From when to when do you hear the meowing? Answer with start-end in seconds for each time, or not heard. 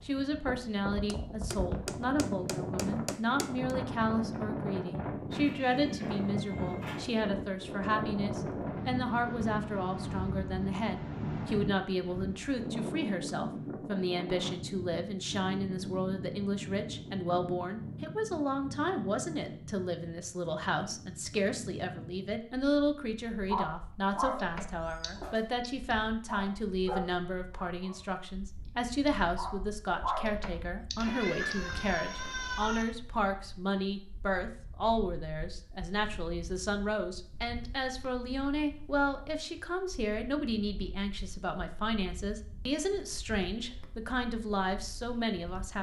5.3-7.2, 24.8-25.6, 30.9-32.9.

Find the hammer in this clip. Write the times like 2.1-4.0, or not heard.
1.1-3.8.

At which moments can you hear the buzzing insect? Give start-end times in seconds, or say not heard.
not heard.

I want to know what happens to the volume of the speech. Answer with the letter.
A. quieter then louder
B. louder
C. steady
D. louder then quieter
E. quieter
C.